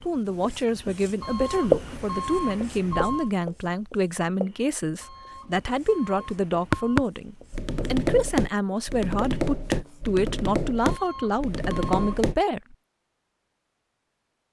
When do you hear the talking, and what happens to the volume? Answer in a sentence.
You can hear the talking from 0.0 to 12.8 s, at a steady volume.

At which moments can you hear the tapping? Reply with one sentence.
The tapping can be heard from 6.7 to 12.3 s.